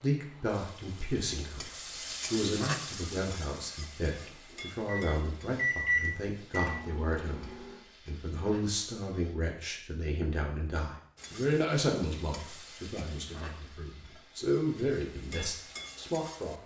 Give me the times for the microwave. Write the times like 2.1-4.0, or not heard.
4.2-7.8.